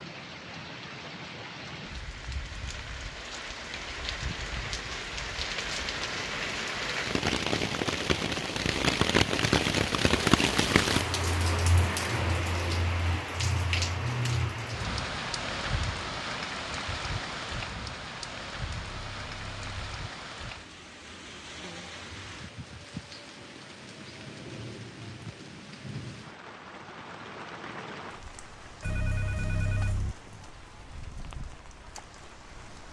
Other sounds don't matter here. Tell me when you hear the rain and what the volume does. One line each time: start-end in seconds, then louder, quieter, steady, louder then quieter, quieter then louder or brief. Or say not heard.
0.0-32.8 louder then quieter.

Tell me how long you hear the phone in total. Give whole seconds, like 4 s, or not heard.
3 s.